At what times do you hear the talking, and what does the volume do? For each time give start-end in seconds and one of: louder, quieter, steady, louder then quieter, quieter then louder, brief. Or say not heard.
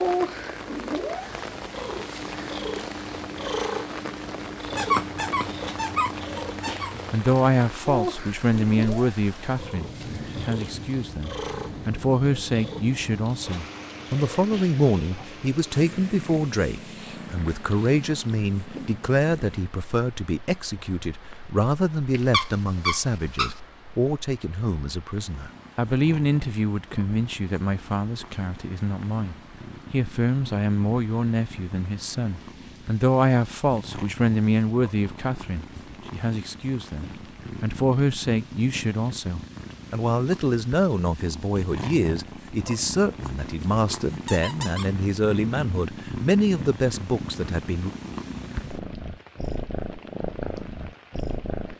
7.1-47.9 steady.